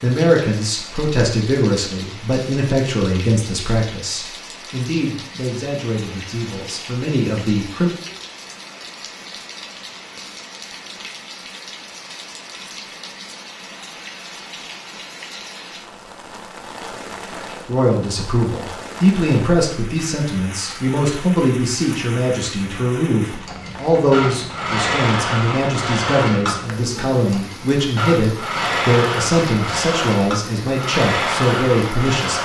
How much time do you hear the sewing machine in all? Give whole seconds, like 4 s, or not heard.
10 s.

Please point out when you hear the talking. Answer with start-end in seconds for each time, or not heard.
0.0-7.9, 17.6-32.4.